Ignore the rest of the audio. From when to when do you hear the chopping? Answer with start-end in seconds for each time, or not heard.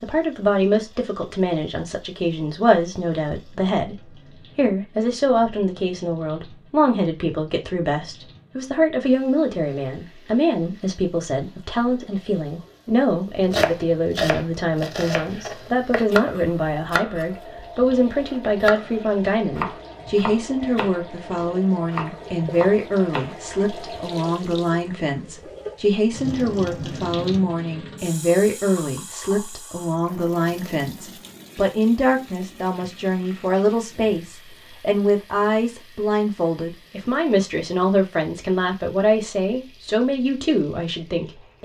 13.5-23.5.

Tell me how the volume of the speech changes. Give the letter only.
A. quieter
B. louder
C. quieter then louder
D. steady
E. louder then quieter
D.